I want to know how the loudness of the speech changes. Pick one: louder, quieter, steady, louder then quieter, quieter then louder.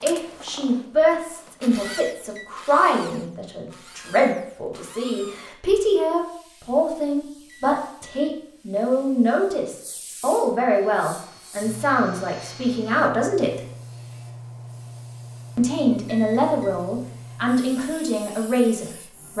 steady.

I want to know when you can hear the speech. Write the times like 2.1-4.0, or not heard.
0.0-13.6, 15.6-19.3.